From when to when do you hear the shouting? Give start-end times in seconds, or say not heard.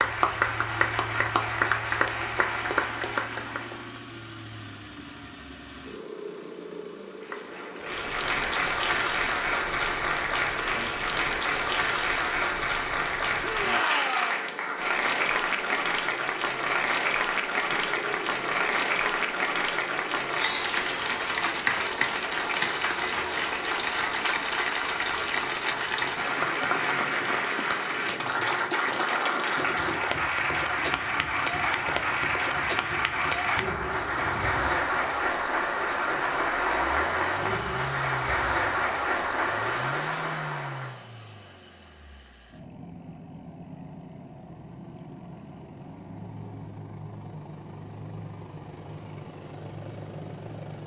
13.4-14.5.